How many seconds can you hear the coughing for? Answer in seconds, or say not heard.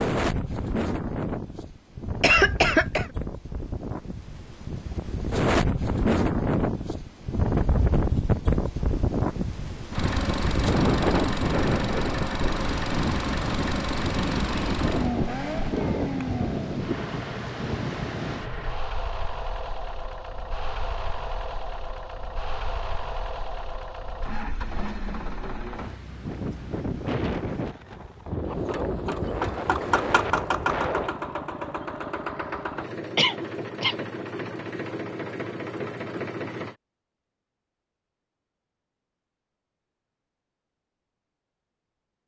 2 s.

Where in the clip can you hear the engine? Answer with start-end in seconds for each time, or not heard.
9.9-26.0, 28.4-36.8.